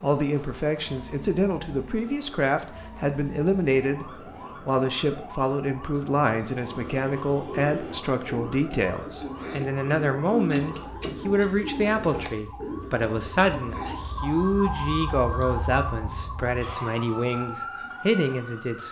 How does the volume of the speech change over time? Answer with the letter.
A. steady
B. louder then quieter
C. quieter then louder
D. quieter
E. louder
A.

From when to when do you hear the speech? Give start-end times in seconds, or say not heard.
0.0-18.8.